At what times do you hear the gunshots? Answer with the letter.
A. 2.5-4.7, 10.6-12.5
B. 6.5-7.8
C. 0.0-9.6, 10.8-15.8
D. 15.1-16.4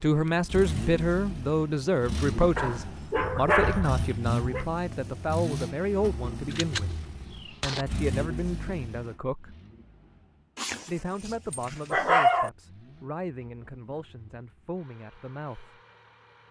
B.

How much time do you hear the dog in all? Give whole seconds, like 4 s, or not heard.
4 s.